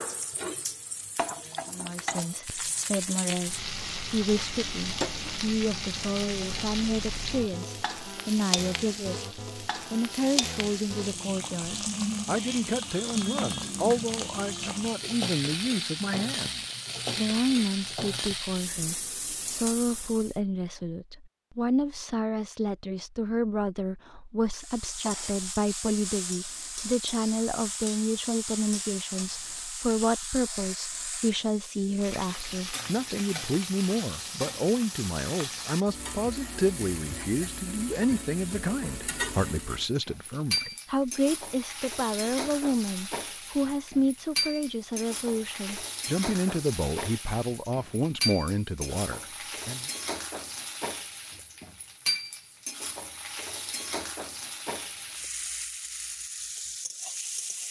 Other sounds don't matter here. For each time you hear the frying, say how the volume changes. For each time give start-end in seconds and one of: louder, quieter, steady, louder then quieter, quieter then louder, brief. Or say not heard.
0.0-20.4 steady
24.5-57.6 steady.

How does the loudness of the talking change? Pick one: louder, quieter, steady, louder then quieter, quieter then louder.
steady.